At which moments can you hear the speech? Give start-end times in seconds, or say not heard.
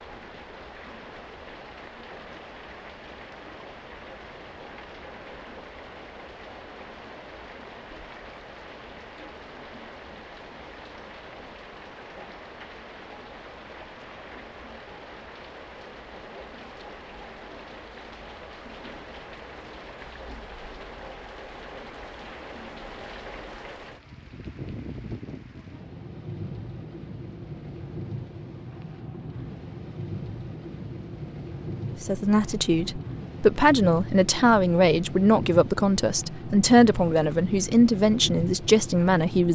32.0-39.5.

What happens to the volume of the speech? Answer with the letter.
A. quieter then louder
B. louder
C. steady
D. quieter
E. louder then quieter
C.